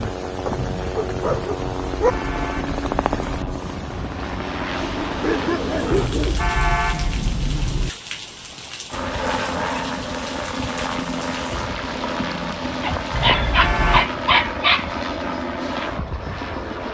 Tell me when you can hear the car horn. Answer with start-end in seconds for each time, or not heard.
1.6-3.6, 5.9-7.9, 13.1-14.1.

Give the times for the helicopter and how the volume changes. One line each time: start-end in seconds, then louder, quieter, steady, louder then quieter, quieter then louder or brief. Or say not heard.
0.0-6.1 steady
8.9-16.8 steady.